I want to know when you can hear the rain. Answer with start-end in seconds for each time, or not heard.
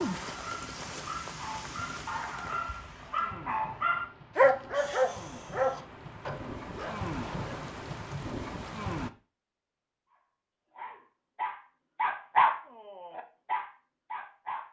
0.0-9.1.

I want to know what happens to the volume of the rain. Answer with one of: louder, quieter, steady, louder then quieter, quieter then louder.
quieter then louder.